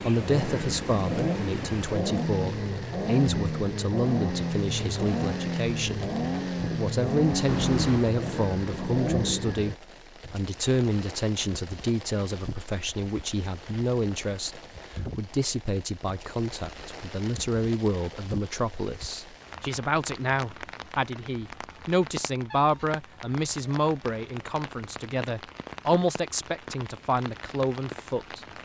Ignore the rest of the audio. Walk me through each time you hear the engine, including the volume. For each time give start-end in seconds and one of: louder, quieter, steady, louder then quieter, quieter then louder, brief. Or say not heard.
0.0-9.8 steady.